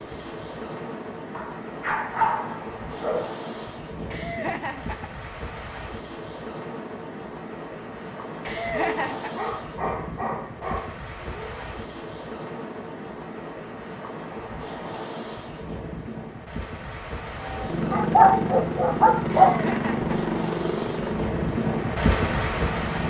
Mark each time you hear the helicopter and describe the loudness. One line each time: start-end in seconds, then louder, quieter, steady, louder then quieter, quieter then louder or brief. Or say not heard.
17.3-23.0 quieter.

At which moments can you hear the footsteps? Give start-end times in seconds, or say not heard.
not heard.